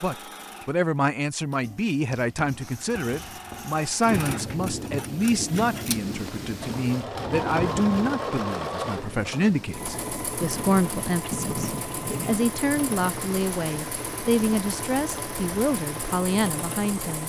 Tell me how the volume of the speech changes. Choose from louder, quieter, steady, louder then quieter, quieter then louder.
steady.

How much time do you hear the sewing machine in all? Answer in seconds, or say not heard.
17 s.